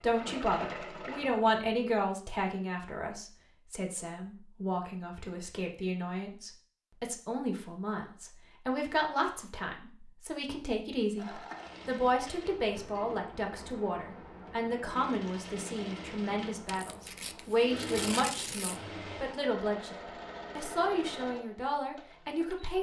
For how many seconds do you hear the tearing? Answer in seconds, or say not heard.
2 s.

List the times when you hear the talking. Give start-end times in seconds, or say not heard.
0.0-19.9, 20.6-22.7.